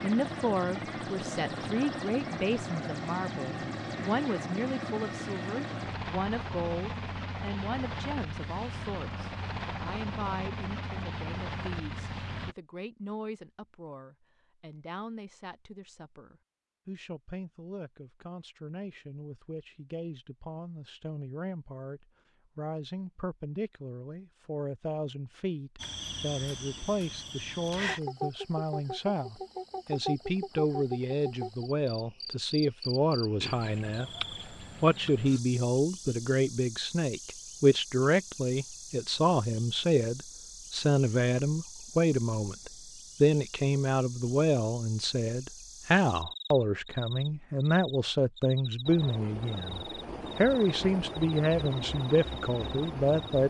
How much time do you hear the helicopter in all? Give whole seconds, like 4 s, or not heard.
17 s.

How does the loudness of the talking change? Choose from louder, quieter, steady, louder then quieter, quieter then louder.
quieter then louder.